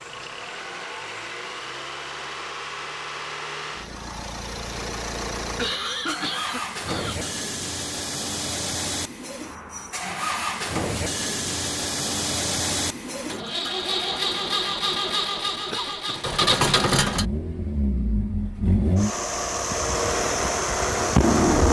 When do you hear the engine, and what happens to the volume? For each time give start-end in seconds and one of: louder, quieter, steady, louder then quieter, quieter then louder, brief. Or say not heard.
0.0-21.6 louder.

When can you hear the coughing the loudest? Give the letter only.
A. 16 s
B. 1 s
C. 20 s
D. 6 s
D.